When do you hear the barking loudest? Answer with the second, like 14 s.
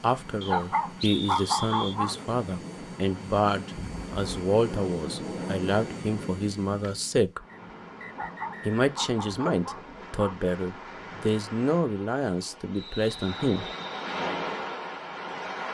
1 s.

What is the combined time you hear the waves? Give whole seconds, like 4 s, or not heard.
8 s.